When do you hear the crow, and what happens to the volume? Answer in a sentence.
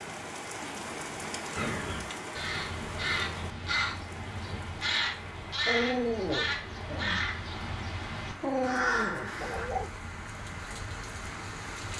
The crow can be heard from 1.6 to 9.7 s, at a steady volume.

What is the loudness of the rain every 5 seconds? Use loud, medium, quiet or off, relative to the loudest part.
loud, medium, loud.